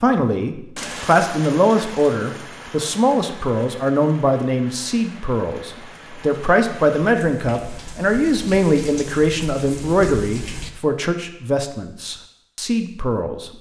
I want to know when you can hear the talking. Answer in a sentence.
You can hear the talking from 0.0 to 13.5 s.